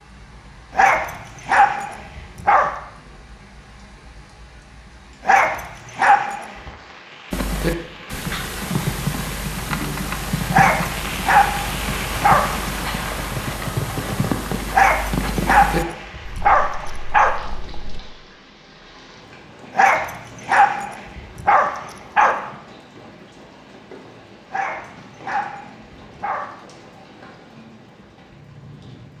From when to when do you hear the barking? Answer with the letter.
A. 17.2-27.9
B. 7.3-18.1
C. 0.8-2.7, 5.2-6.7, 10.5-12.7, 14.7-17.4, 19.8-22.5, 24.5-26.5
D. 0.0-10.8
C.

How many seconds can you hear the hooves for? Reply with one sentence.
The hooves can be heard for 11 seconds in total.